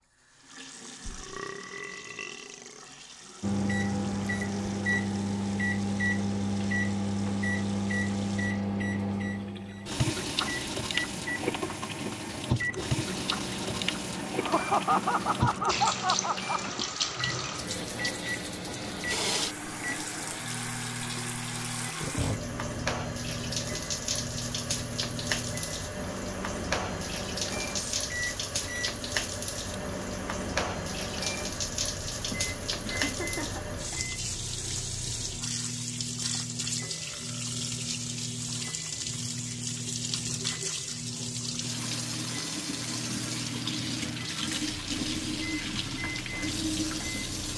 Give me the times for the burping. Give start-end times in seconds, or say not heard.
1.0-2.9, 36.8-37.9.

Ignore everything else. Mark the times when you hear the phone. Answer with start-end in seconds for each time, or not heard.
not heard.